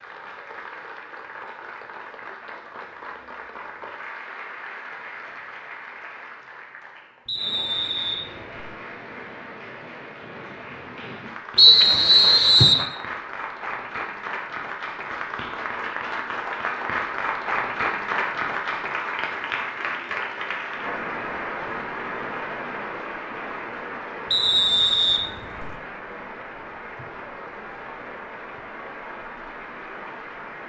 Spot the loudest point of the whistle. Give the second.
12 s.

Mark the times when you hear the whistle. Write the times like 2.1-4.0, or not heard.
7.2-8.7, 11.6-12.8, 24.3-25.7.